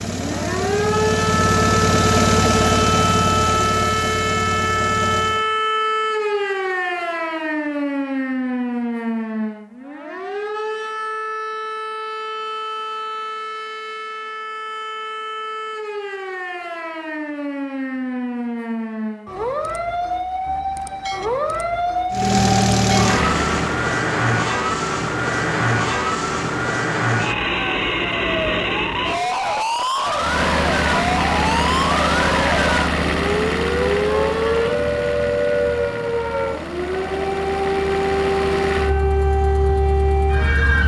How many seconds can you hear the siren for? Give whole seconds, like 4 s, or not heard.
41 s.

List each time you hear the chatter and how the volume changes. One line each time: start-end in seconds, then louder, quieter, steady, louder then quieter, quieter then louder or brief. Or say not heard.
not heard.